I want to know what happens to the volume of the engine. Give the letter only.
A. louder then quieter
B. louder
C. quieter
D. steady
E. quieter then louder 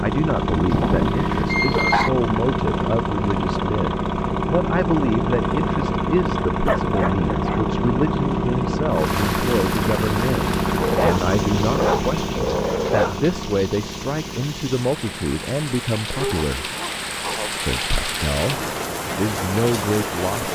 C.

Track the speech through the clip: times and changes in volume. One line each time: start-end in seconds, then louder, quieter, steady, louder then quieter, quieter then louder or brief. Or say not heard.
0.0-16.7 steady
17.6-20.4 brief.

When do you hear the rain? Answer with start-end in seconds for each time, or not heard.
8.9-20.4.